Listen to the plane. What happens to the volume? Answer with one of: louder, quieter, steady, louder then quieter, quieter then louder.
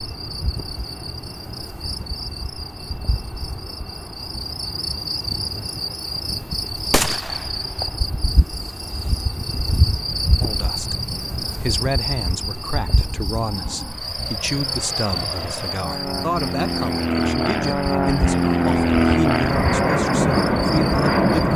louder.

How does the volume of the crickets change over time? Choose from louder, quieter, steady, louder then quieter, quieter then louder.
louder then quieter.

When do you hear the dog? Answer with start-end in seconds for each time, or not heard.
not heard.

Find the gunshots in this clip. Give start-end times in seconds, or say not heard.
6.9-7.6.